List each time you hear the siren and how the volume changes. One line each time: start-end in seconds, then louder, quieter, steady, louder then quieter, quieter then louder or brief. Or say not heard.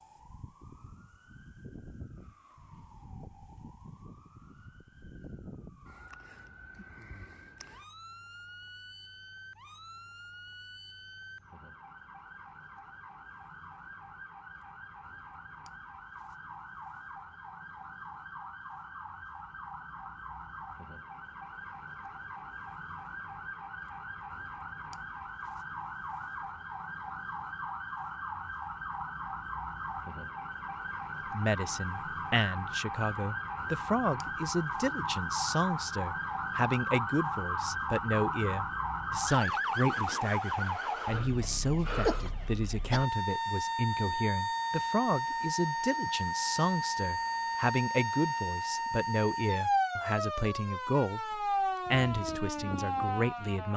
0.0-53.7 louder.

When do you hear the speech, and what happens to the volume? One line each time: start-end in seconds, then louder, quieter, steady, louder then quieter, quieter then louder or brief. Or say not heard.
31.3-53.7 steady.